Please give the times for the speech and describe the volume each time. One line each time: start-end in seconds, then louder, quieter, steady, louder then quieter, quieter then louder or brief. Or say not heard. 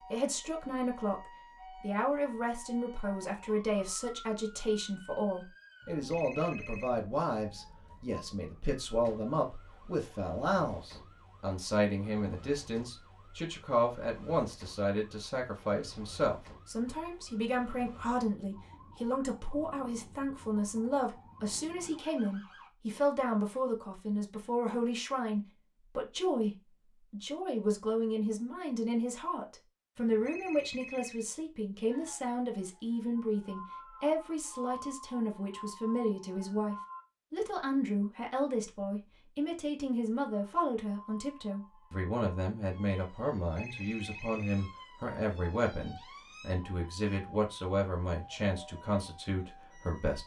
0.1-50.2 steady.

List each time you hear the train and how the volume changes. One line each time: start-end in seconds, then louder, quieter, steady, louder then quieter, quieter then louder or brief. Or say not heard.
not heard.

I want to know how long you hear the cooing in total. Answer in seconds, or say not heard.
not heard.